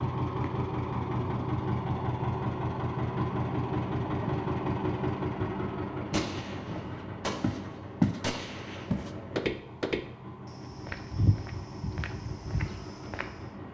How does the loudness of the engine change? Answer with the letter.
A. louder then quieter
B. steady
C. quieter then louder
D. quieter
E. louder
D.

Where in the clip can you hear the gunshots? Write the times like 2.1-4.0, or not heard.
6.1-8.9.